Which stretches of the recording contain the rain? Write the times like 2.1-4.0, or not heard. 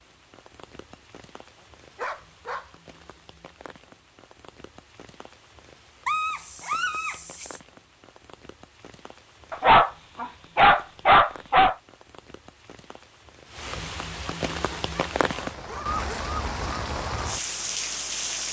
0.0-18.4.